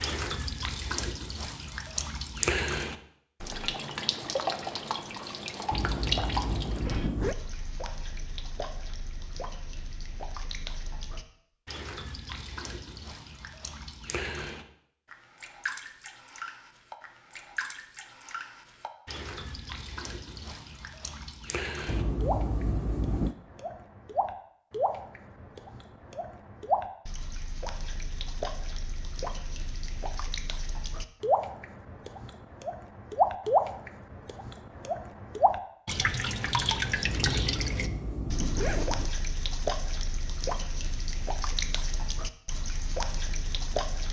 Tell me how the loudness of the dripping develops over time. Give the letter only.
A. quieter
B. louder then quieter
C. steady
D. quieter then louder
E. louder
D.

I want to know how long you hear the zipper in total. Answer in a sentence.
You can hear the zipper for 5 seconds altogether.